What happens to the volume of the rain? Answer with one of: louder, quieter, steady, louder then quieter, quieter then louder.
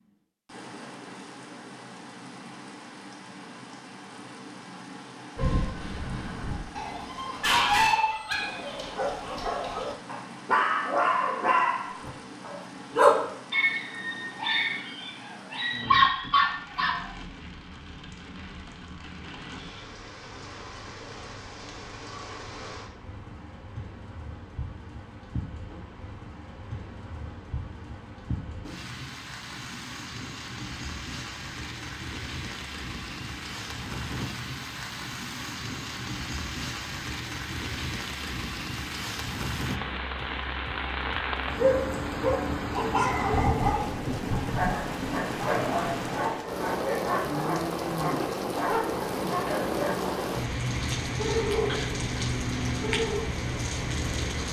louder.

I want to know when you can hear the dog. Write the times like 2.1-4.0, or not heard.
5.3-17.1, 41.5-50.1, 51.1-52.0, 52.8-53.2.